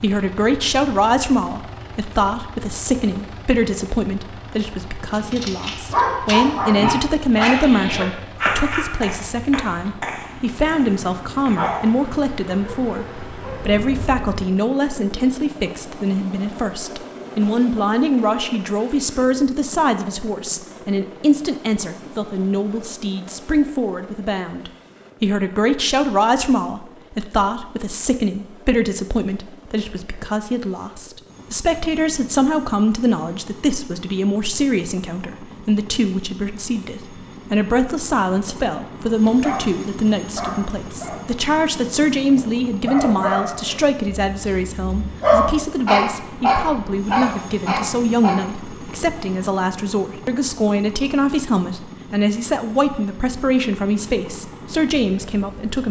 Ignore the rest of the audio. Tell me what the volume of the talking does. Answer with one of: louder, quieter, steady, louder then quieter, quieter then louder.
steady.